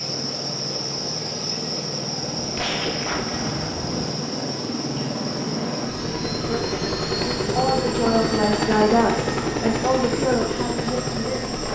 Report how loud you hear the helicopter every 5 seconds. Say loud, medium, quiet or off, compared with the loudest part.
medium, loud, loud.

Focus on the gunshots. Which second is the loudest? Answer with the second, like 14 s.
3 s.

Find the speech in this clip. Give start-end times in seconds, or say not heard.
6.3-11.5.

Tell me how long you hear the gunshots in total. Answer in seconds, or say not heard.
2 s.